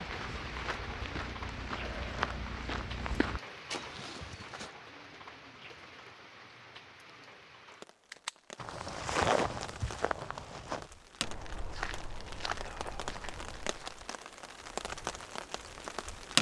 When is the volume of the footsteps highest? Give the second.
9 s.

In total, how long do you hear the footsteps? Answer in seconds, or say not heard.
10 s.